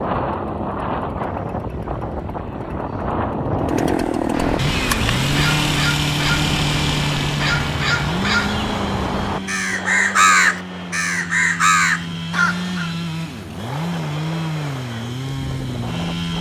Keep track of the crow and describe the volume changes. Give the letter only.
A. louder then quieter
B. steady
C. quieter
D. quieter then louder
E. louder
E.